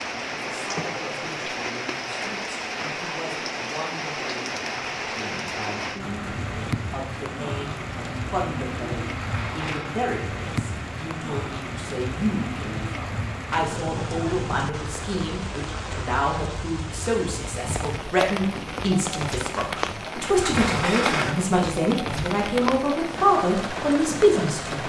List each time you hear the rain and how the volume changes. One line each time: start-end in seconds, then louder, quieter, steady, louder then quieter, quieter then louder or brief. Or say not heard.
0.0-24.8 steady.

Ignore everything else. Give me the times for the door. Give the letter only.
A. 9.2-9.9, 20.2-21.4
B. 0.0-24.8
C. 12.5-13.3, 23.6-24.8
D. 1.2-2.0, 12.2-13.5
A.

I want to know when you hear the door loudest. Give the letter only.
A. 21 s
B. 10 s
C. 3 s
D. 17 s
A.